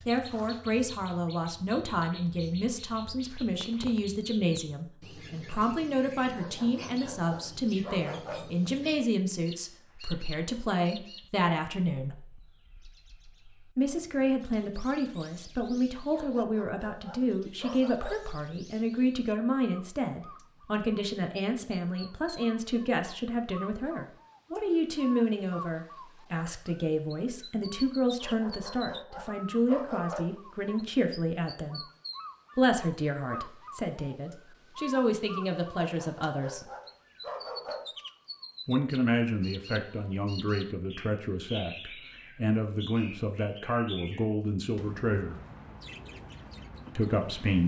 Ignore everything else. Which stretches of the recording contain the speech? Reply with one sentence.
The speech can be heard from 0.1 to 12.2 s, from 13.8 to 31.8 s, from 32.5 to 36.7 s, from 38.6 to 45.4 s and from 47.0 to 47.6 s.